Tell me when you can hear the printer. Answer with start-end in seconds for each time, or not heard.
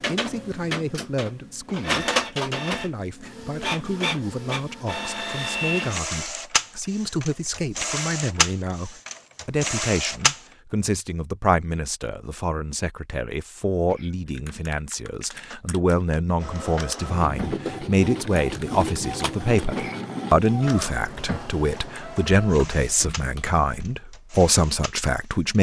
0.0-10.4, 16.4-25.5.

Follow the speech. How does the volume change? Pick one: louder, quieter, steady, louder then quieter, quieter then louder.
louder.